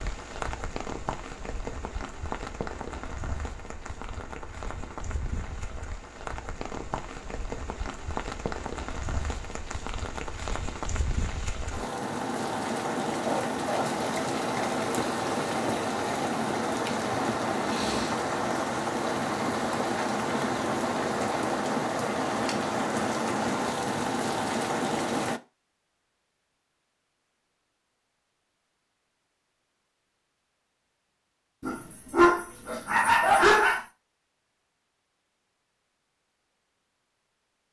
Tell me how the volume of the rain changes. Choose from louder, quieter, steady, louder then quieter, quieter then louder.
louder.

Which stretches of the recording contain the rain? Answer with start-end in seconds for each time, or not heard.
0.0-25.4.